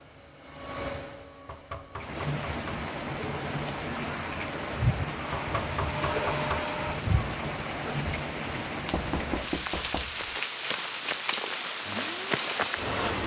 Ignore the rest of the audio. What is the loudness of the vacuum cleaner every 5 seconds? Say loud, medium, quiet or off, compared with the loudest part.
medium, loud, loud.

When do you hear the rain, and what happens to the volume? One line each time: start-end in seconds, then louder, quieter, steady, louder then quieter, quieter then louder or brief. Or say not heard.
1.9-13.2 steady.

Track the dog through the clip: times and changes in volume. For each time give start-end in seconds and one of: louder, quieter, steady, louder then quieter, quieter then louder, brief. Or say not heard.
not heard.